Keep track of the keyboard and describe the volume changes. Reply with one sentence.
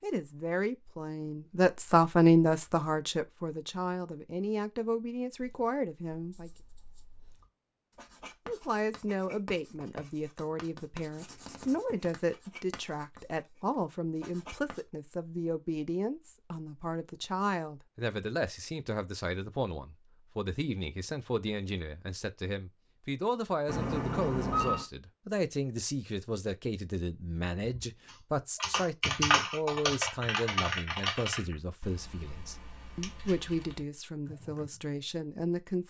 The volume of the keyboard goes down.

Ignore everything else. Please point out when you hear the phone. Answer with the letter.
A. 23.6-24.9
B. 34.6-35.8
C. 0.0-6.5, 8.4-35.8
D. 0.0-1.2
A.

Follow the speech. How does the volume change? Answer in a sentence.
The volume of the speech goes down.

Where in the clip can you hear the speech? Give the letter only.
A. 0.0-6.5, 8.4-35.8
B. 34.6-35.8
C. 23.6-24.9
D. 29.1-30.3
A.